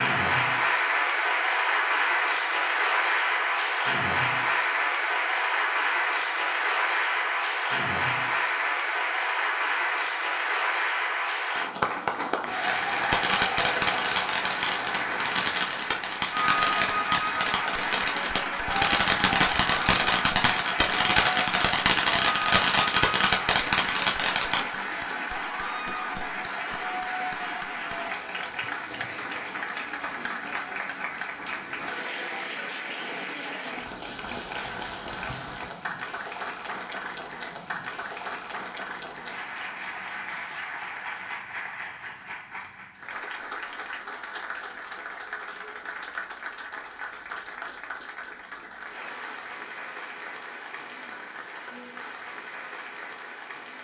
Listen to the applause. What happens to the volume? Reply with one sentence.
The loudness of the applause goes down.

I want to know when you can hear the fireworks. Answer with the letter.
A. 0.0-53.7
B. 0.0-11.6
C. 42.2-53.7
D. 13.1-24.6
D.